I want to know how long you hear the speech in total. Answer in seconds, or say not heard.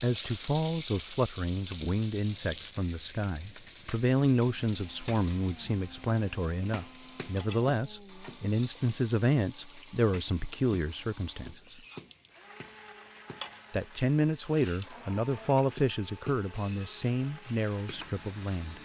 17 s.